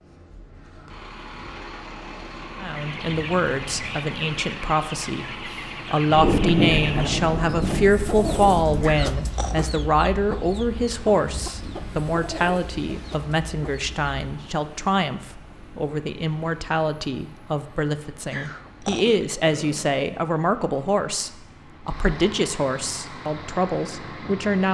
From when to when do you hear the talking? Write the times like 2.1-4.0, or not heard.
2.6-24.6.